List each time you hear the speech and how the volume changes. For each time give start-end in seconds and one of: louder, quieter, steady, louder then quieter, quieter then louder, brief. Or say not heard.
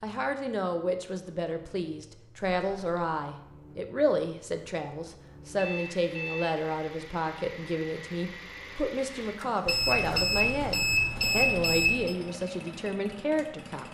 0.0-13.8 steady.